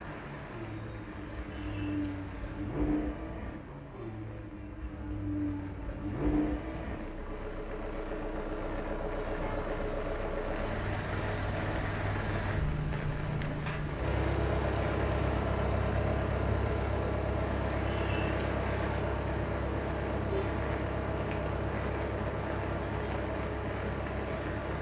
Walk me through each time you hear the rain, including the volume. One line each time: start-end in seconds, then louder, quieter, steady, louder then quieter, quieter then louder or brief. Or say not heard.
0.0-24.7 louder.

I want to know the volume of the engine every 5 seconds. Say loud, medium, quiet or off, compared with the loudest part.
medium, loud, loud, loud, loud.